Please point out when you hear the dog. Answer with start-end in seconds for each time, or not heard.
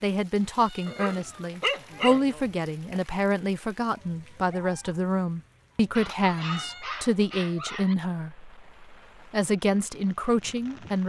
0.8-2.5, 6.0-8.0.